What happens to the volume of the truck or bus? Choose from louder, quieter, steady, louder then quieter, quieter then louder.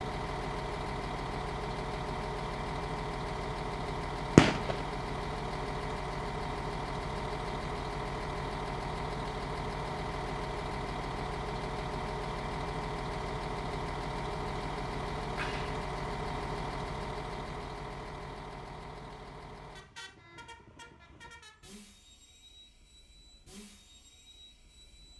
quieter.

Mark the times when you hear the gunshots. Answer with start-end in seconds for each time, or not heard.
4.3-4.8, 15.3-15.8.